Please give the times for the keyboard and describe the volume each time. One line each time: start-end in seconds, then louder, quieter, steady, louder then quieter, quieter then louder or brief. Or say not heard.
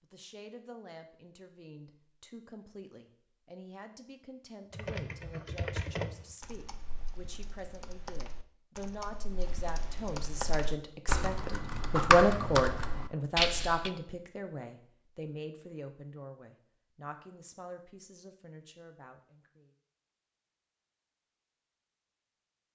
4.7-13.9 quieter then louder.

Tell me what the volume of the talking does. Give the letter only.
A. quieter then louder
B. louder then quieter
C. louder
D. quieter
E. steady
B.